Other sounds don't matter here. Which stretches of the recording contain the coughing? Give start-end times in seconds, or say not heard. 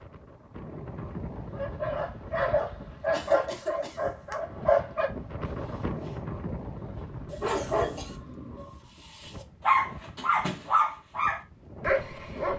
3.1-4.1, 7.2-8.2.